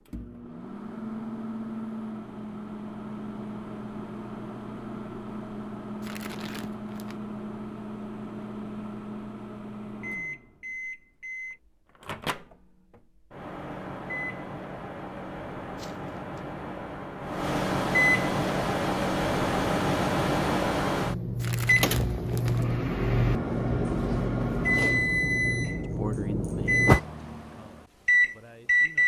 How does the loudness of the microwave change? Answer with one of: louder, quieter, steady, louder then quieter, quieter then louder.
louder.